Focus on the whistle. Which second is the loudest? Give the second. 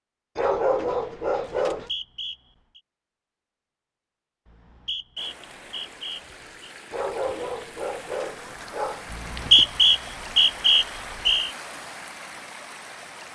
10 s.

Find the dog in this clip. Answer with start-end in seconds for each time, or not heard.
0.3-1.9, 6.9-9.8.